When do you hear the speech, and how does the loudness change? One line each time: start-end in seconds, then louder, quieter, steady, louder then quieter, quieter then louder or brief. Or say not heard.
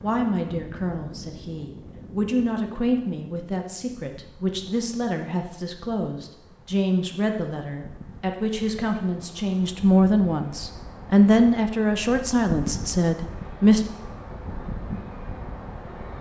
0.0-13.8 louder.